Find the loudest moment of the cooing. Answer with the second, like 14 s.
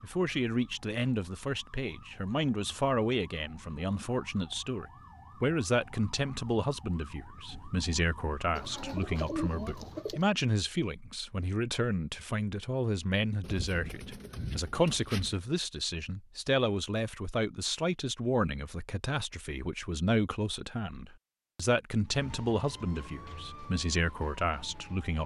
9 s.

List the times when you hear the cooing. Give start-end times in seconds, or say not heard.
8.6-10.3, 13.4-15.4.